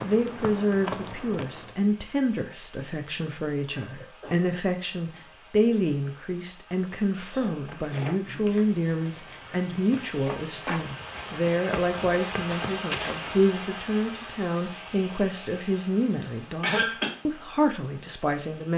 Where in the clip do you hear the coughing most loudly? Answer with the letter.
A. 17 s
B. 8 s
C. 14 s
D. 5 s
A.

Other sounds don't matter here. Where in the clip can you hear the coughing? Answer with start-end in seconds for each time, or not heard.
3.6-4.5, 7.3-8.4, 16.2-17.1.